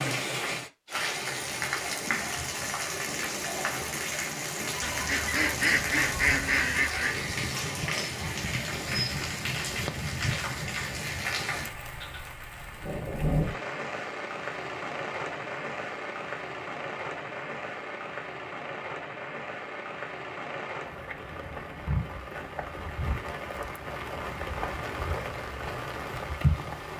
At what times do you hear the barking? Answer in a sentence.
You can't hear the barking here.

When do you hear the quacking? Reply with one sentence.
You can hear the quacking from 4.8 to 7.2 s.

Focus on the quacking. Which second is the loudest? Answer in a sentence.
The loudest moment of the quacking is at 6 seconds.